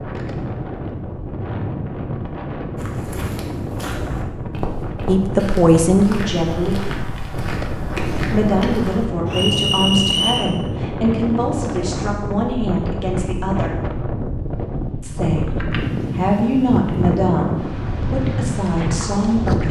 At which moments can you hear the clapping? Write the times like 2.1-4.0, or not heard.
not heard.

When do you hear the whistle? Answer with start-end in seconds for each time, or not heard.
9.2-10.5.